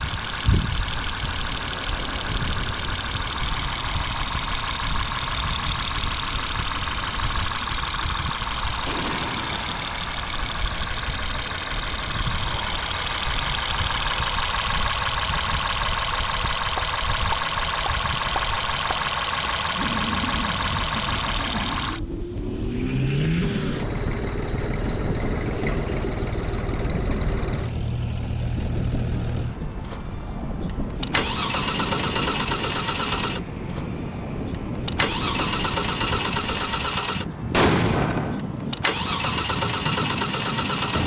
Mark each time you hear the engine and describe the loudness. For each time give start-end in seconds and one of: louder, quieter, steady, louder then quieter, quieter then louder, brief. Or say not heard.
0.0-41.0 steady.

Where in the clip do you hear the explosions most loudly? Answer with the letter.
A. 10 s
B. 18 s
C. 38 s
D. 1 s
C.